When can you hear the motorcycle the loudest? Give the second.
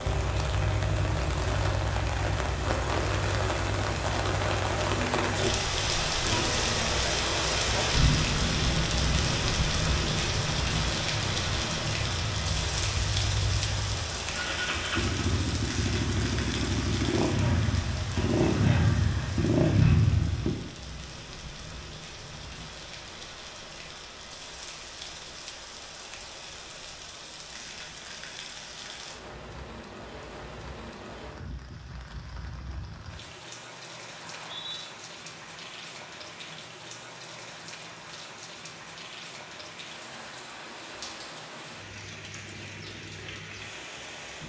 20 s.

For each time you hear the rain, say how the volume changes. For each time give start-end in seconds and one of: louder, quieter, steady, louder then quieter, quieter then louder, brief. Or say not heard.
0.0-44.4 quieter.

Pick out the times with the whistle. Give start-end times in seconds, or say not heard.
34.2-34.9.